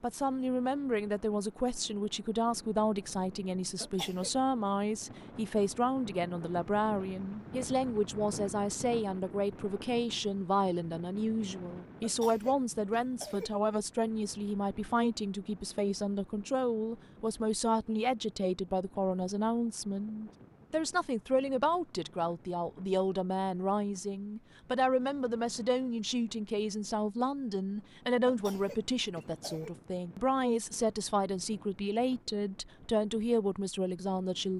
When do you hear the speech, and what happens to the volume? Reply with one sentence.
The speech can be heard from 0.0 to 34.5 s, at a steady volume.